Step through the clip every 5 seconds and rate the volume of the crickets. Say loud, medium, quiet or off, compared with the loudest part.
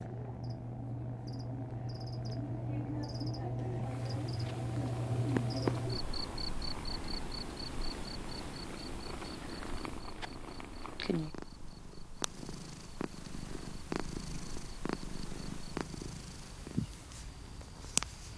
loud, loud, quiet, quiet.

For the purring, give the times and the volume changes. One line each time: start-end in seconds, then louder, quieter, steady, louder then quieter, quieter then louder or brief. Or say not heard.
0.0-18.3 louder.